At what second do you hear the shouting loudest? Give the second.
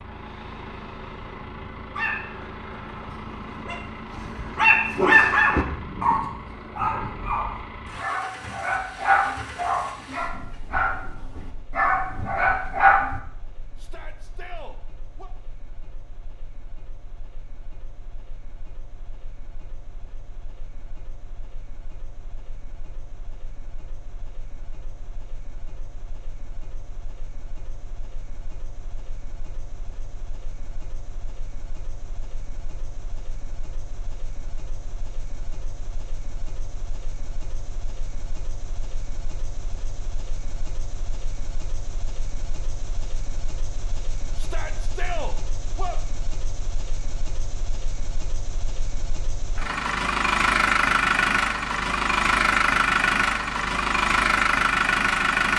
45 s.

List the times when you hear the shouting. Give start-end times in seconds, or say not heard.
13.8-15.3, 44.4-46.0.